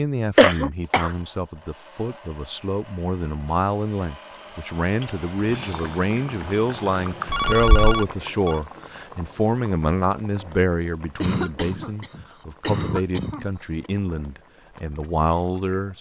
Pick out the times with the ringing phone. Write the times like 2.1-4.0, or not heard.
7.3-8.6.